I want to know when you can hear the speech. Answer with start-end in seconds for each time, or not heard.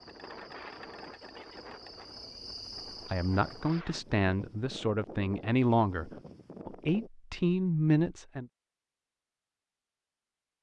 3.0-8.4.